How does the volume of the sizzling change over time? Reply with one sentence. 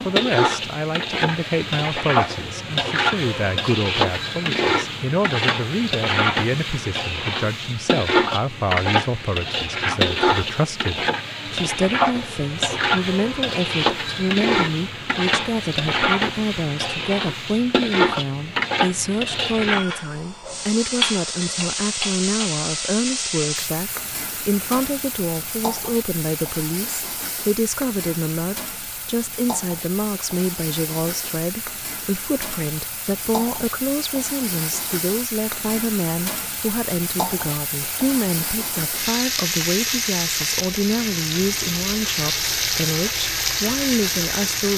The loudness of the sizzling goes down, then up.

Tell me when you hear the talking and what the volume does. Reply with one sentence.
The talking can be heard from 0.1 to 44.7 s, at a steady volume.